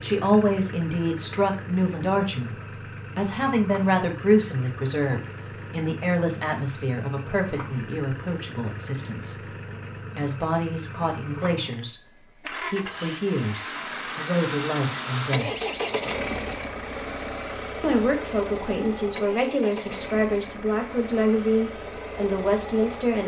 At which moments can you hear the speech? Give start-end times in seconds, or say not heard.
0.0-2.5, 3.1-9.4, 10.2-12.0, 12.7-15.5, 17.8-23.2.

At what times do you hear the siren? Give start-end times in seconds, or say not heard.
not heard.